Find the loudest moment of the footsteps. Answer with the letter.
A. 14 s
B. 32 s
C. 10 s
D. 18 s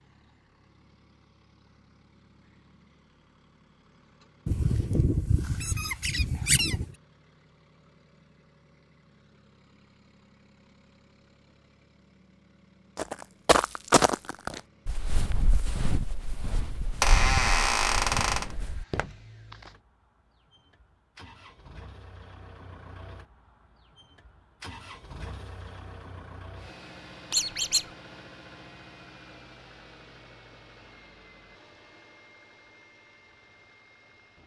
A.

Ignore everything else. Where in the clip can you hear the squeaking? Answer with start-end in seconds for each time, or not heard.
4.5-6.9, 16.8-18.5, 27.3-27.9.